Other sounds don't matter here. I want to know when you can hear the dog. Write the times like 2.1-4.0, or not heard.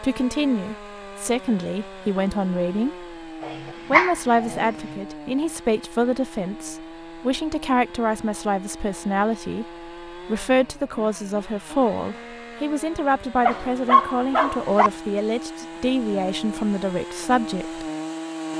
3.4-4.7, 13.4-14.9.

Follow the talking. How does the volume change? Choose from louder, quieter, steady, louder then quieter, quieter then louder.
steady.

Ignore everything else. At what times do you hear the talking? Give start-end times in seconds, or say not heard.
0.0-3.1, 3.9-17.9.